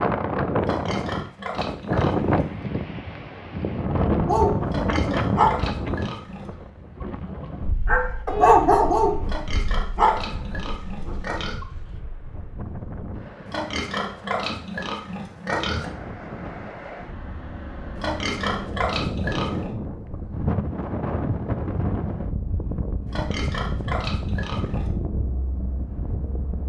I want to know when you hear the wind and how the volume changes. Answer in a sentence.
The wind can be heard from 0.0 to 26.6 s, getting quieter then louder.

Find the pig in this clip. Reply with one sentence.
You can hear the pig from 0.6 to 2.5 s, from 4.7 to 6.5 s, from 9.2 to 11.6 s, from 13.4 to 15.9 s, from 17.9 to 19.7 s and from 23.1 to 24.9 s.